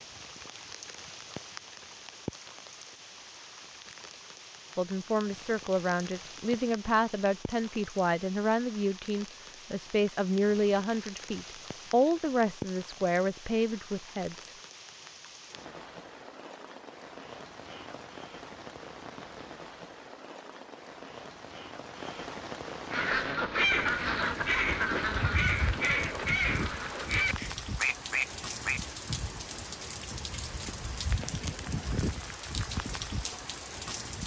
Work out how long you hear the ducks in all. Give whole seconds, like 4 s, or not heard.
6 s.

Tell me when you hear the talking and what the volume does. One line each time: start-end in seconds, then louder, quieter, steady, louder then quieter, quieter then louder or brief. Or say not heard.
4.8-14.5 steady.